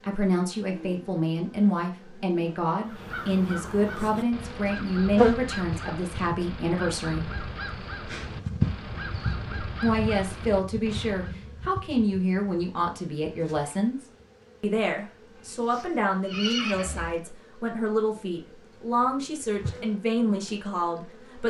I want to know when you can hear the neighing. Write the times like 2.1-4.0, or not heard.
15.4-17.1.